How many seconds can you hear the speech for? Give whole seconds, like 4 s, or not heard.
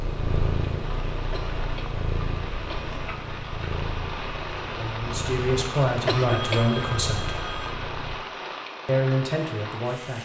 4 s.